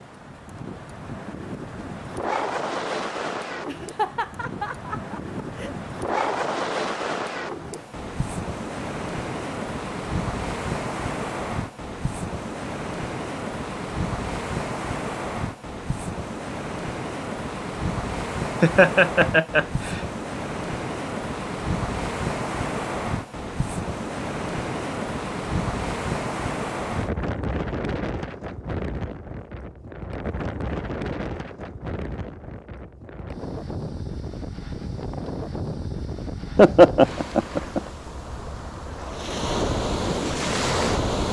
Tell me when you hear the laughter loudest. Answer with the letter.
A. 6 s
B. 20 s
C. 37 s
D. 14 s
C.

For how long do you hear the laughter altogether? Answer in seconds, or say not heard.
5 s.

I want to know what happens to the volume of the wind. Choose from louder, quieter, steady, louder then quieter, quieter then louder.
steady.